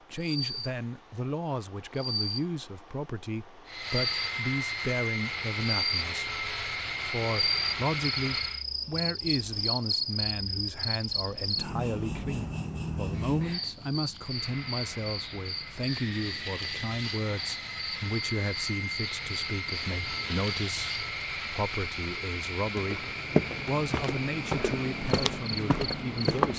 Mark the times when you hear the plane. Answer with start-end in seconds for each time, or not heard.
3.6-8.7, 14.2-26.5.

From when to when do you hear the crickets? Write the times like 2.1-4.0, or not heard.
0.0-26.5.